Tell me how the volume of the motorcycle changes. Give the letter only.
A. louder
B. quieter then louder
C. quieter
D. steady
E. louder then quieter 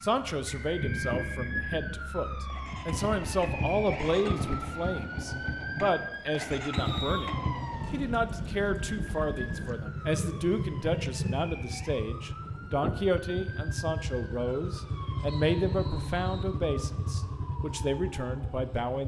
D.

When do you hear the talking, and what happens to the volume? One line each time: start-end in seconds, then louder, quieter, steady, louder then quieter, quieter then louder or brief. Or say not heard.
0.0-19.0 steady.